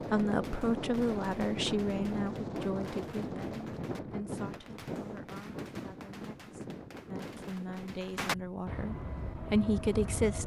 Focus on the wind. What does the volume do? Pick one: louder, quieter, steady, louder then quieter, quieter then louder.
quieter.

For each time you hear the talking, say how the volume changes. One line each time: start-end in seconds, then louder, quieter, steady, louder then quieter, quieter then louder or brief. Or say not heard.
0.0-10.4 quieter then louder.